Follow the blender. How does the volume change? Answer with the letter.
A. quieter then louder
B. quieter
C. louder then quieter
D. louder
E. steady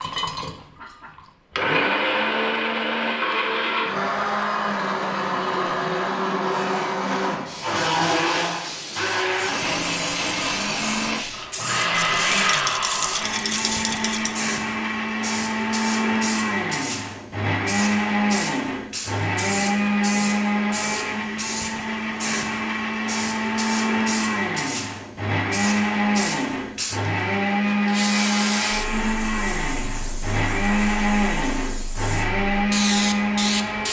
E.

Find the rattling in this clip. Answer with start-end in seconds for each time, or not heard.
11.9-14.3.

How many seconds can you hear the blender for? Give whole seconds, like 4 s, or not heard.
34 s.